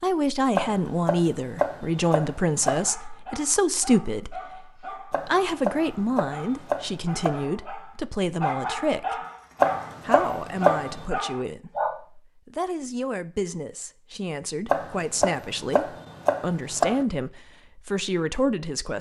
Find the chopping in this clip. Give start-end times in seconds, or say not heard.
0.6-2.9, 5.1-7.5, 9.6-11.1, 14.7-17.1.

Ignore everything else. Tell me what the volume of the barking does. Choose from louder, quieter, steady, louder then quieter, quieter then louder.
louder.